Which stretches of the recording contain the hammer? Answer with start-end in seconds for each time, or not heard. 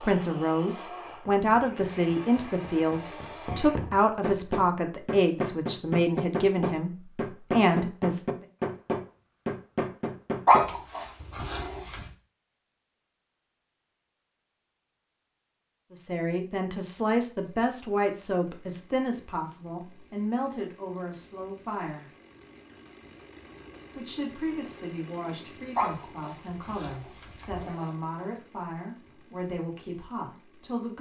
1.1-10.8.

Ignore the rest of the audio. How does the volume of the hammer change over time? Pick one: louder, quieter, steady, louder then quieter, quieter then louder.
louder.